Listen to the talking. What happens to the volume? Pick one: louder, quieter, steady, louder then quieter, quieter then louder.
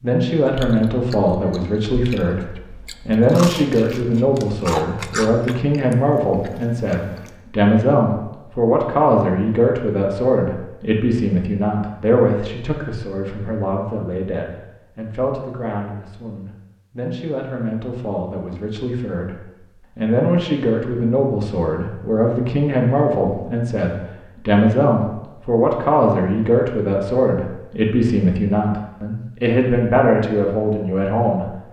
quieter then louder.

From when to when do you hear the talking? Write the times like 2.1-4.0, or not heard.
0.0-31.6.